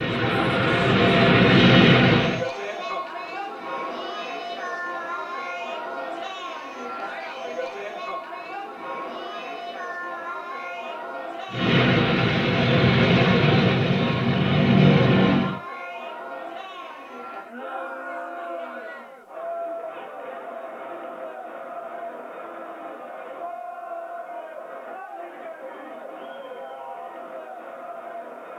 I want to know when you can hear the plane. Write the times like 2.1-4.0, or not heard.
0.0-2.5, 11.5-15.6.